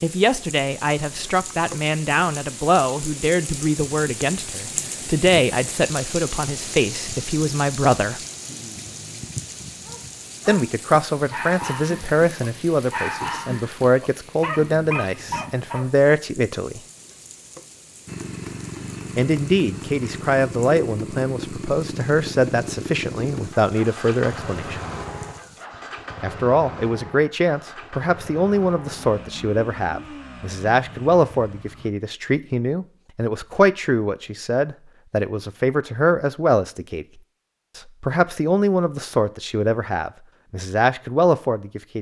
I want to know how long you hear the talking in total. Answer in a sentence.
The talking can be heard for 35 seconds in total.